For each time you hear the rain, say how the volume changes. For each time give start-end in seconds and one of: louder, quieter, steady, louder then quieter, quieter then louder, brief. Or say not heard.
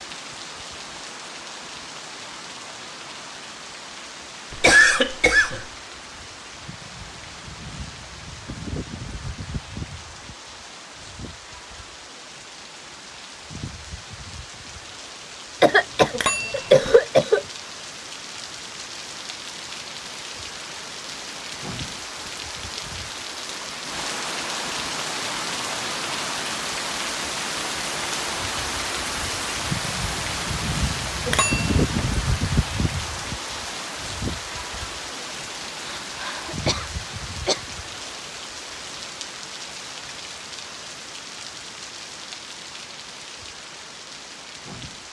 0.0-45.0 louder then quieter.